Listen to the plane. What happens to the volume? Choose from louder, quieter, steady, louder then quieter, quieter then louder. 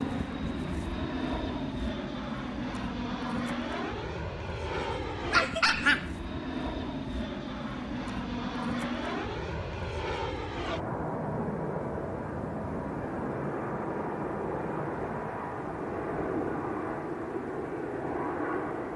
steady.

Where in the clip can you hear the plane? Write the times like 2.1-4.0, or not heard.
0.0-18.9.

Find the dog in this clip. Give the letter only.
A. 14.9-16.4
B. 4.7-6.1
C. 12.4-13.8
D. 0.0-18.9
B.